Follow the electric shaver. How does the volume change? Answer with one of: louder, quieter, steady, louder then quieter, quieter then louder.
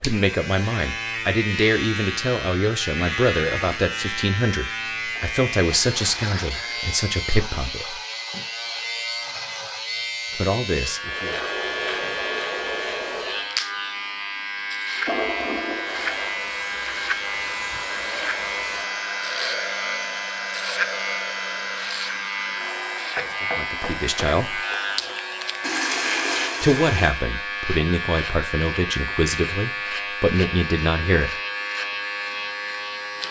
steady.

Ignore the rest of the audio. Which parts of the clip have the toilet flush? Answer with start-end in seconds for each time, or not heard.
5.2-6.8, 15.1-16.4, 25.6-27.1.